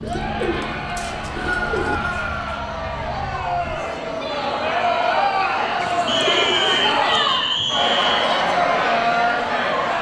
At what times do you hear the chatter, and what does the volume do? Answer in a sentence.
You can hear the chatter from 0.0 to 9.9 s, getting louder.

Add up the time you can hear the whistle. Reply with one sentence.
You can hear the whistle for 4 seconds altogether.